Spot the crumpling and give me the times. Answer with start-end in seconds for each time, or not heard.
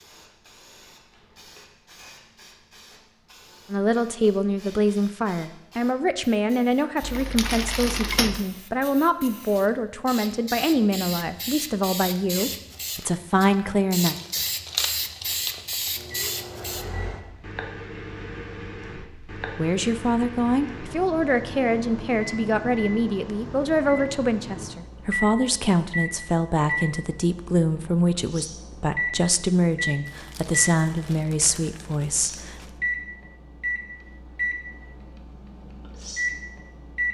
7.0-8.4, 14.0-16.1, 30.1-32.8.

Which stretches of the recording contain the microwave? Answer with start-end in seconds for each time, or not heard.
15.9-37.0.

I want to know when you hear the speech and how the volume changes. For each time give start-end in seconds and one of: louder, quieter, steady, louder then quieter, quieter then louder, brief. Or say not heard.
3.7-14.2 steady
19.4-32.5 steady.